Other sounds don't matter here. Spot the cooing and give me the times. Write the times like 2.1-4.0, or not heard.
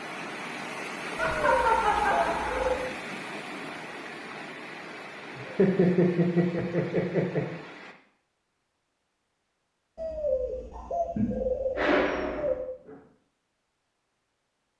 1.4-2.9, 9.9-12.7.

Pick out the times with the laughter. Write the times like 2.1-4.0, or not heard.
1.1-2.8, 5.3-7.5, 11.2-12.9.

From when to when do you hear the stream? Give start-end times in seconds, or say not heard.
0.0-8.0.